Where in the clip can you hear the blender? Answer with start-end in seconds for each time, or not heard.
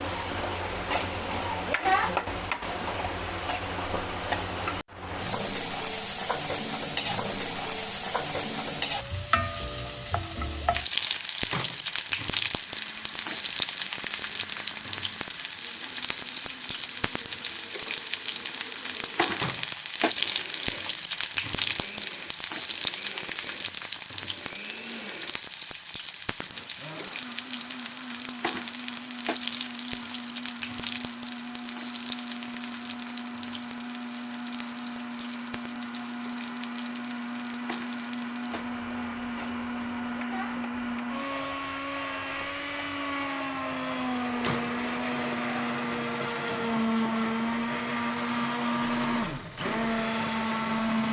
12.7-25.4, 26.4-51.0.